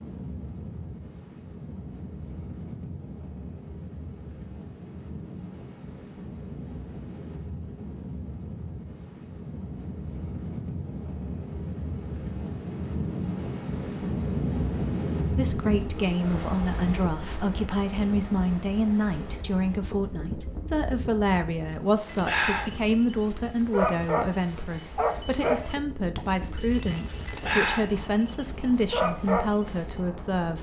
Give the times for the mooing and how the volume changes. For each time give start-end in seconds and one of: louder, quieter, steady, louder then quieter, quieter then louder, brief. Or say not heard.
not heard.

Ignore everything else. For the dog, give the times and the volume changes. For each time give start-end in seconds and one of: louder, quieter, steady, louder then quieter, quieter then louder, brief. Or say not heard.
22.1-30.0 steady.